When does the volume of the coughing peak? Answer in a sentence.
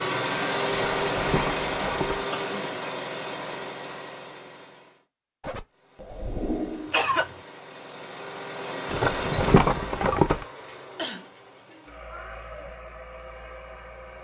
The volume of the coughing peaks at 7 seconds.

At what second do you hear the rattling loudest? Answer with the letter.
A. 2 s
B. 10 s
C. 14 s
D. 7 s
B.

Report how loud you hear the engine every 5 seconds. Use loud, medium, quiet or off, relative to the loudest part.
loud, medium, quiet.